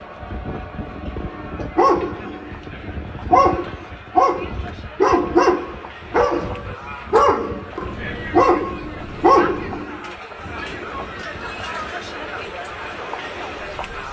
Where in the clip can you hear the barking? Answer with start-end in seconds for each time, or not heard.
1.2-9.9.